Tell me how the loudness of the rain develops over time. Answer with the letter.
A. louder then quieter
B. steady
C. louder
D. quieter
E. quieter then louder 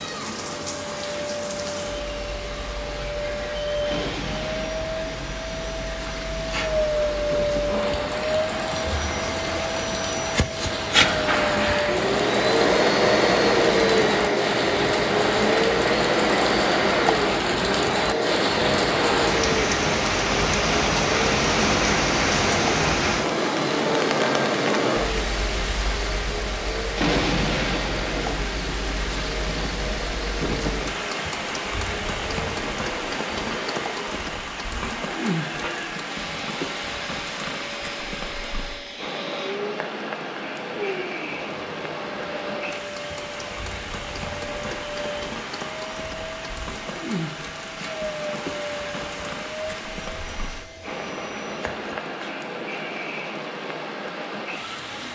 A.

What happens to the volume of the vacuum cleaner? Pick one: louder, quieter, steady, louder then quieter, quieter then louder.
louder then quieter.